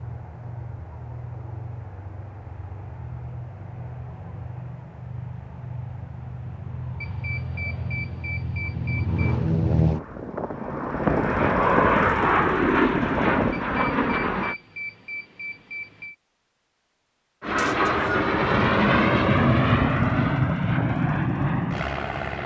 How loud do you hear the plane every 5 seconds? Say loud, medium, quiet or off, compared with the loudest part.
quiet, medium, loud, loud, loud.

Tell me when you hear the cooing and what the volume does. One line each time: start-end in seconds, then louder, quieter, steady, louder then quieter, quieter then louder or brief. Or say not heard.
not heard.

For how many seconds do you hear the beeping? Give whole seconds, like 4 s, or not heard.
5 s.